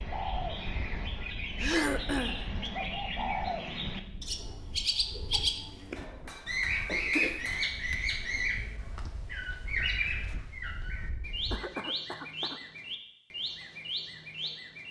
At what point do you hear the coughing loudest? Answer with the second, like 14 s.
2 s.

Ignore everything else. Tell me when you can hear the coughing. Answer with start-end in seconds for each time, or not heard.
1.6-2.4, 6.0-7.5, 11.5-12.6.